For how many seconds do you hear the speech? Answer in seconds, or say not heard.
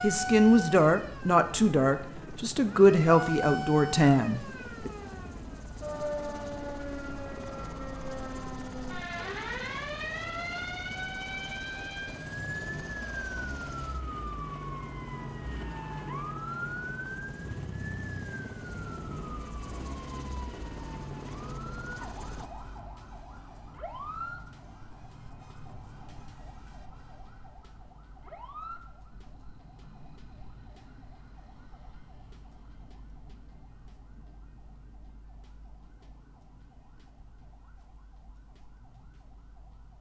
5 s.